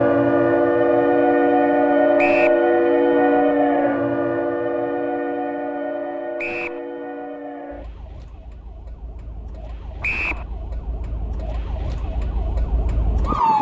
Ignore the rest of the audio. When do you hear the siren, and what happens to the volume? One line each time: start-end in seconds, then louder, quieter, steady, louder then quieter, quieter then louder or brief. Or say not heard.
0.0-13.5 quieter then louder.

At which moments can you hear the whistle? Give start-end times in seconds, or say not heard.
2.1-2.6, 6.3-6.8, 10.0-10.4.